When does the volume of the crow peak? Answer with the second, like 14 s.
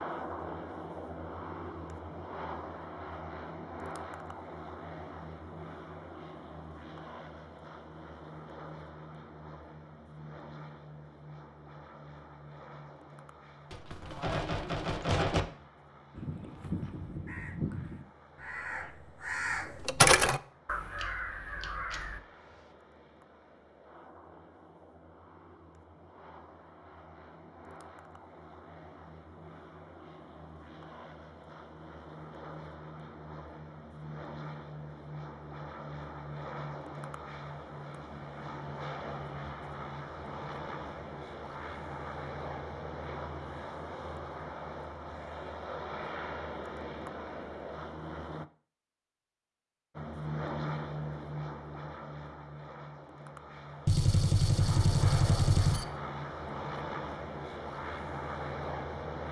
20 s.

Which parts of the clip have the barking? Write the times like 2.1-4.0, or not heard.
not heard.